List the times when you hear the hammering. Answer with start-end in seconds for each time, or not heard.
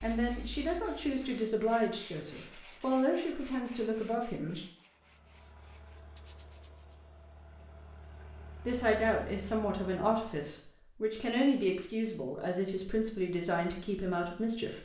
not heard.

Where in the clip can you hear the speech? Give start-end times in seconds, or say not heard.
0.0-4.7, 8.7-14.7.